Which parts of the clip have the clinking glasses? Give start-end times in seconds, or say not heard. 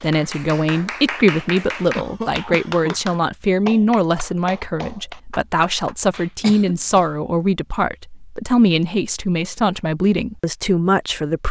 not heard.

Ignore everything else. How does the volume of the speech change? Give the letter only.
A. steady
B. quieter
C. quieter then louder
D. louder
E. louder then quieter
A.